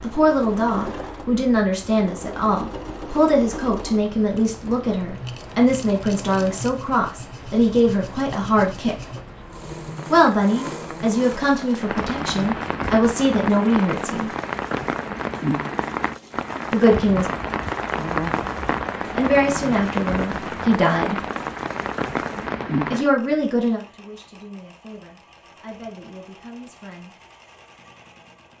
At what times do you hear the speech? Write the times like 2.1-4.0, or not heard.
0.0-9.1, 10.1-14.3, 16.7-17.3, 19.1-21.2, 22.9-27.1.